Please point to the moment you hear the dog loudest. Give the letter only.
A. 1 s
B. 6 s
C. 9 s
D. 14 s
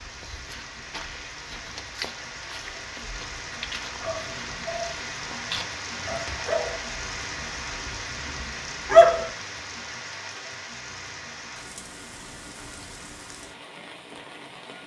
C.